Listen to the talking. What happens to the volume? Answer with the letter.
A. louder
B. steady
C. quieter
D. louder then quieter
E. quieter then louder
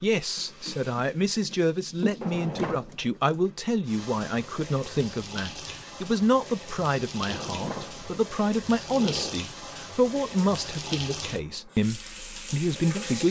B.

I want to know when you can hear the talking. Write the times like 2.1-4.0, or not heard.
0.0-13.2.